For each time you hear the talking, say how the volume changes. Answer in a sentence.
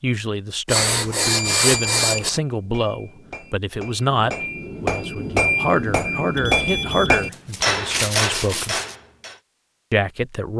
You can hear the talking from 0.0 to 8.8 s, at a steady volume; and briefly from 9.9 to 10.5 s.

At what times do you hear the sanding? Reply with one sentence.
You can hear the sanding from 0.7 to 2.4 s and from 7.1 to 8.9 s.